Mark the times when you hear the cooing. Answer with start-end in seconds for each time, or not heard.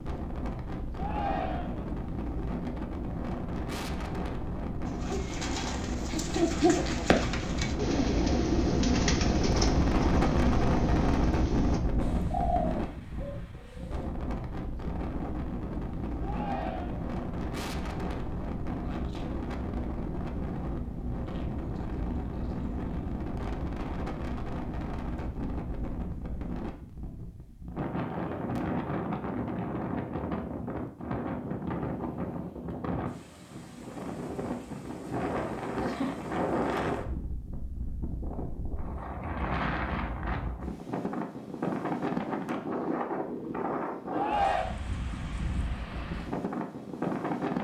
4.8-14.1.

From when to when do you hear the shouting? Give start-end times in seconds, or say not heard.
0.9-1.9, 16.2-17.1, 44.1-44.8.